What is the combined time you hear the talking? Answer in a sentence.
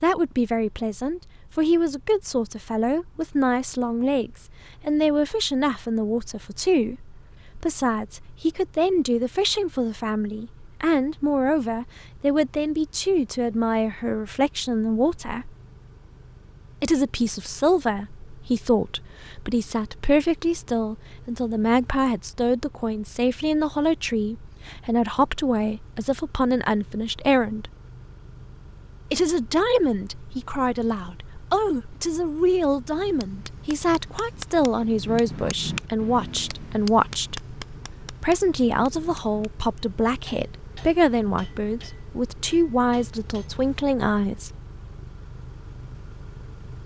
You can hear the talking for 42 seconds altogether.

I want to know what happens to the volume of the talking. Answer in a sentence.
The loudness of the talking stays about the same.